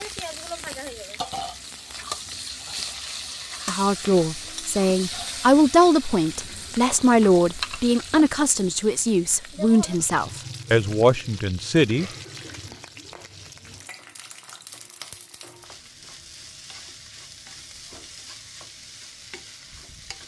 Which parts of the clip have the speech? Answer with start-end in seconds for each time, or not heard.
3.6-12.1.